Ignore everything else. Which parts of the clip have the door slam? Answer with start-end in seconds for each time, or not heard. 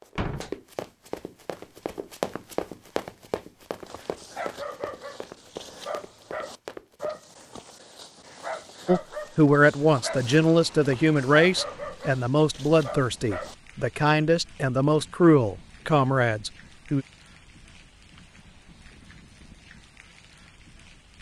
0.1-0.6.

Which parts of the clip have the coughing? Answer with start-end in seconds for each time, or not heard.
not heard.